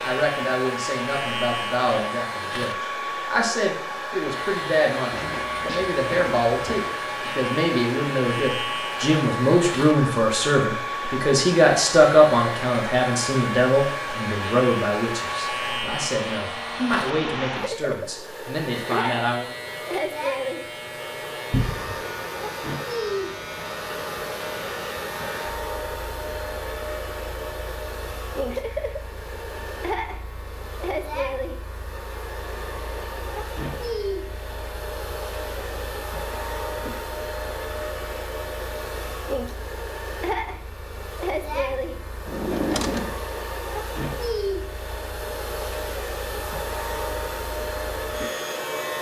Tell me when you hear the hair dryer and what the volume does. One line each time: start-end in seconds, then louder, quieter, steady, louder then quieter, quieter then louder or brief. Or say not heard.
0.0-48.9 steady.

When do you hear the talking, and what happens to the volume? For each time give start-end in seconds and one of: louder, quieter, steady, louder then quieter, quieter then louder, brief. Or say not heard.
0.0-19.5 louder then quieter.